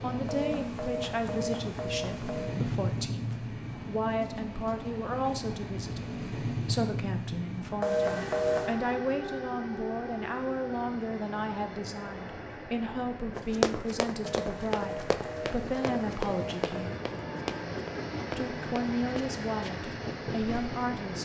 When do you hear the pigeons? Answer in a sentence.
You can't hear the pigeons here.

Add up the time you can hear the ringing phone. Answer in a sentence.
The ringing phone can be heard for 6 seconds in total.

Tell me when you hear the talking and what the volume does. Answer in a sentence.
The talking can be heard from 0.0 to 16.9 s, at a steady volume; and briefly from 18.4 to 21.2 s.